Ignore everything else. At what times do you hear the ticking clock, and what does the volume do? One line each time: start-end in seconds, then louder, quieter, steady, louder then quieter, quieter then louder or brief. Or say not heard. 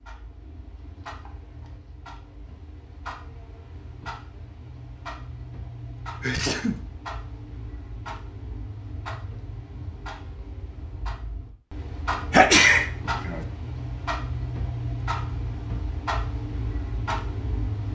0.0-17.8 louder.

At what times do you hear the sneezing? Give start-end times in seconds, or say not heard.
6.2-6.8, 12.3-13.4.